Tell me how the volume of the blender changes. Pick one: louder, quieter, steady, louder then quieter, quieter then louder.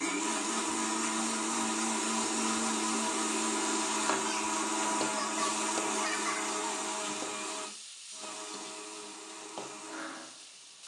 quieter.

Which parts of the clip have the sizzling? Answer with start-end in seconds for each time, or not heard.
0.0-10.8.